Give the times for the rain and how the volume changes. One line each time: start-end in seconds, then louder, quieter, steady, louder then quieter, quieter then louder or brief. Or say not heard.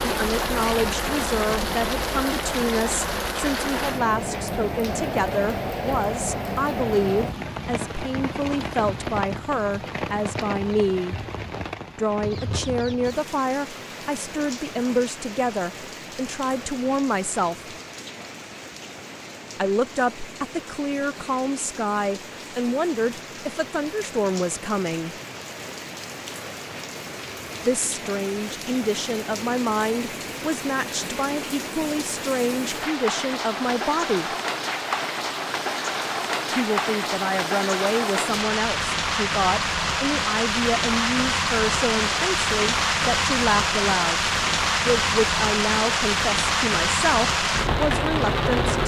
0.0-48.8 quieter then louder.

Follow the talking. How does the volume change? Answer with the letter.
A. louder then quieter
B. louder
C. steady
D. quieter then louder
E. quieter
C.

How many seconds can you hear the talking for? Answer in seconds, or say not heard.
41 s.